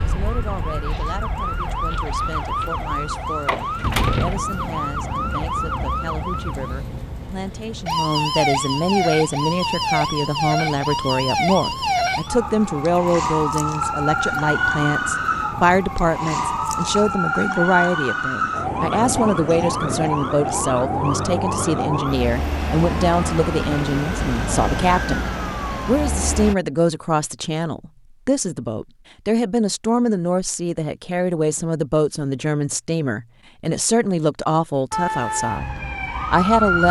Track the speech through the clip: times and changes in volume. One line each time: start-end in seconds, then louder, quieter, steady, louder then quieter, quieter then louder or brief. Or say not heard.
0.0-35.6 louder
36.2-36.8 brief.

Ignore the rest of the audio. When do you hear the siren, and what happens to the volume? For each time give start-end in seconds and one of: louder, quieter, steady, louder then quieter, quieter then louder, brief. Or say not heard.
0.0-26.6 steady
34.9-36.8 brief.